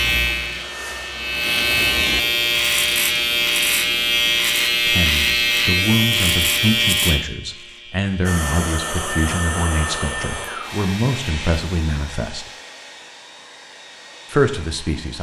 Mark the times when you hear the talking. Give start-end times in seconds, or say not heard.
4.8-12.5, 14.3-15.1.